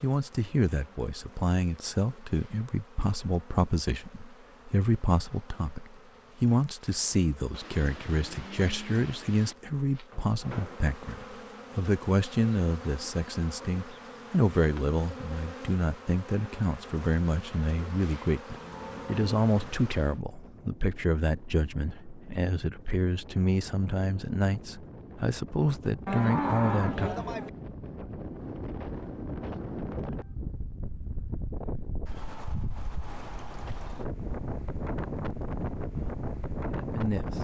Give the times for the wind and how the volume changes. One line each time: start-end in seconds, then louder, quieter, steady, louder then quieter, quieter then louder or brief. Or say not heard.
18.6-37.4 louder.